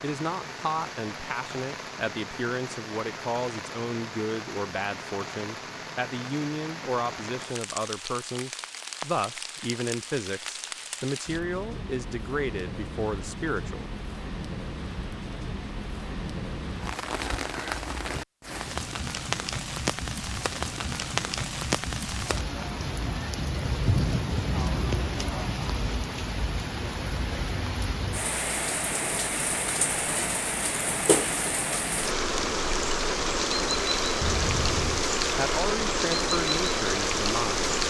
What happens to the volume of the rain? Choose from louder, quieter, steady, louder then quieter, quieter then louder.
louder.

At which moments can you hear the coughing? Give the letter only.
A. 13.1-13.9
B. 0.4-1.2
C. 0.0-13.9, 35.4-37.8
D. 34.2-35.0
D.